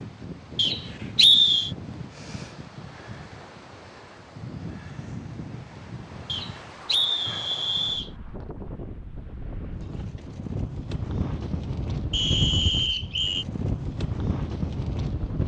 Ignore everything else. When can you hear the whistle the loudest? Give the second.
1 s.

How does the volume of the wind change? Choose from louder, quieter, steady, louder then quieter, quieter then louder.
louder.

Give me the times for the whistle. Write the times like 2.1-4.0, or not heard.
0.6-1.7, 6.2-8.1, 12.1-13.4.